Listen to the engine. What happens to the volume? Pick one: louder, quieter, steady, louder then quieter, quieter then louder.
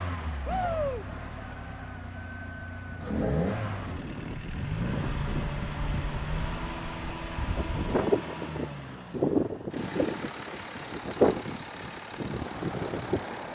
louder then quieter.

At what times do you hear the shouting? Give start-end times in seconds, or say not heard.
0.5-1.1.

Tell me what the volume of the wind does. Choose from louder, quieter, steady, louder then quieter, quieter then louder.
louder.